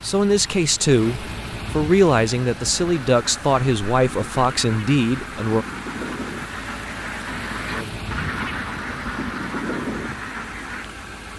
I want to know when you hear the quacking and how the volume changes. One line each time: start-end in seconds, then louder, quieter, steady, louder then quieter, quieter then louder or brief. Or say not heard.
2.7-10.8 louder.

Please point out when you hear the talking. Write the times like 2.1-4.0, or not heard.
0.0-5.7.